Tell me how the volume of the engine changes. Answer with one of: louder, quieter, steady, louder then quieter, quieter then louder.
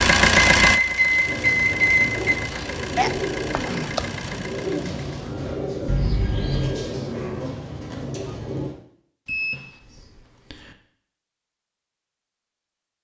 quieter.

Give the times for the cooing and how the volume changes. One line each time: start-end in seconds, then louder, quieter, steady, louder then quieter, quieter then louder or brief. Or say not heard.
1.2-8.8 steady.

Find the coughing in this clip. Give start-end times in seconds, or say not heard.
3.0-4.2.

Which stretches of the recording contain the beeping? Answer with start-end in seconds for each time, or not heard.
0.6-2.4, 5.8-6.8, 9.2-10.8.